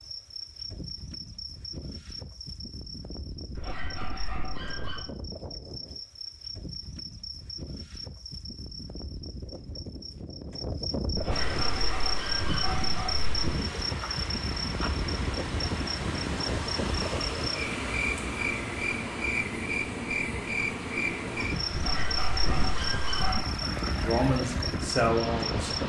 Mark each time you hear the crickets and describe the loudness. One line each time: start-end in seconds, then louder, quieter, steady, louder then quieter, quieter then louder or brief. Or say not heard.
0.0-25.8 louder.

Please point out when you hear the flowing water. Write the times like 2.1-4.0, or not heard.
11.3-25.8.